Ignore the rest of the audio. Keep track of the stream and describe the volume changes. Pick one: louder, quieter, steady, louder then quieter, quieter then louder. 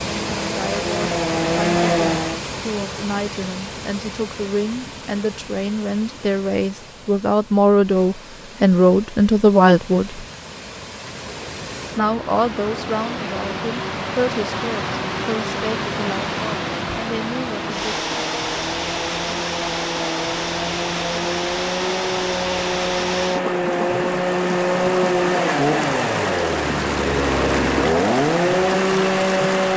quieter then louder.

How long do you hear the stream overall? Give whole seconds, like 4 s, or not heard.
30 s.